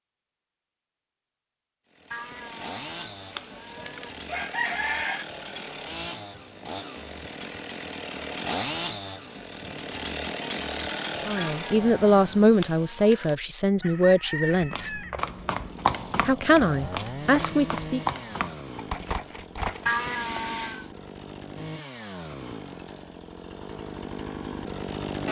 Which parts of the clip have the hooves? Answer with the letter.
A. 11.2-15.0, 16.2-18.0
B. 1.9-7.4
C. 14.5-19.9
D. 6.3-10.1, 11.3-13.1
C.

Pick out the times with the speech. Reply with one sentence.
You can hear the speech from 11.2 to 15.0 s and from 16.2 to 18.0 s.